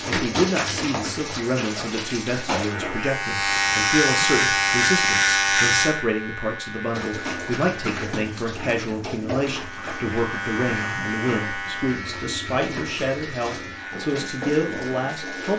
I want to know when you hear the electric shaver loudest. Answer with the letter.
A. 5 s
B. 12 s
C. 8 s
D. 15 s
A.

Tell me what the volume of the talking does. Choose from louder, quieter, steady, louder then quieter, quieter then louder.
steady.